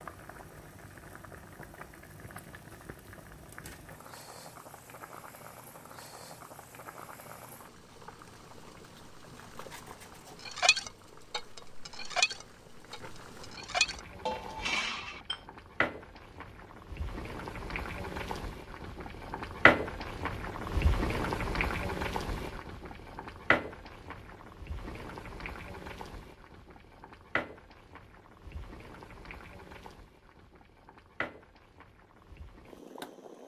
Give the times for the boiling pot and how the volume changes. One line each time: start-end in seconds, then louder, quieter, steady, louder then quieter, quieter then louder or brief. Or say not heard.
0.0-33.4 louder then quieter.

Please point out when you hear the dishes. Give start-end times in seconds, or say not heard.
10.4-15.3.